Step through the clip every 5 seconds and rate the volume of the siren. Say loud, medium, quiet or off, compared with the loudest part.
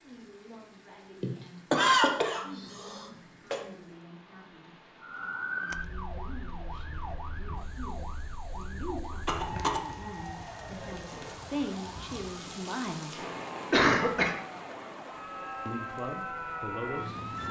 off, loud, medium, loud.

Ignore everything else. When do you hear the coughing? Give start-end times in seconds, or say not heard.
1.2-3.6, 9.2-9.8, 13.7-14.3.